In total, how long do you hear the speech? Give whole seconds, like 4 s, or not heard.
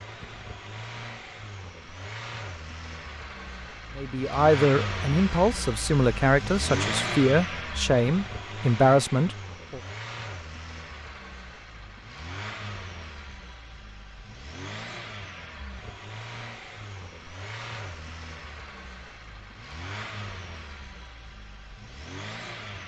6 s.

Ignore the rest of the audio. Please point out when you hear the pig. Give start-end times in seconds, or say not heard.
not heard.